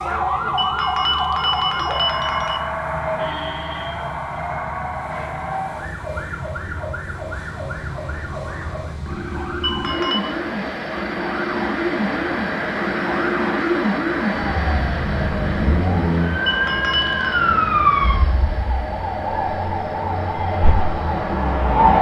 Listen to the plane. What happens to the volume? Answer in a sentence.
The loudness of the plane goes up, then down.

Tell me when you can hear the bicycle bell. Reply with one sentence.
The bicycle bell can be heard from 0.6 to 2.6 s, from 9.6 to 10.2 s and from 16.4 to 17.4 s.